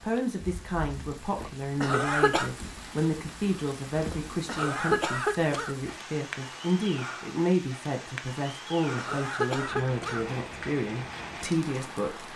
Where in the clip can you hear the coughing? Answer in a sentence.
The coughing can be heard from 1.8 to 2.5 s, from 4.5 to 5.8 s and from 8.9 to 10.2 s.